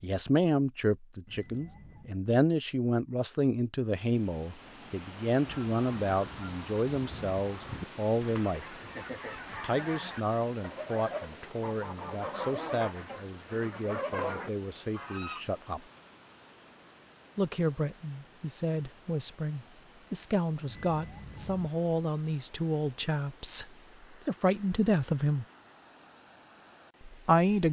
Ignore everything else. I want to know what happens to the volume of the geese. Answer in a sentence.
The loudness of the geese goes up.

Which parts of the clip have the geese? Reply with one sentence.
You can hear the geese from 5.5 to 15.4 s.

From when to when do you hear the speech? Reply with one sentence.
The speech can be heard from 0.0 to 8.8 s, from 9.6 to 15.8 s, from 17.4 to 23.6 s, from 24.2 to 25.4 s and from 27.1 to 27.6 s.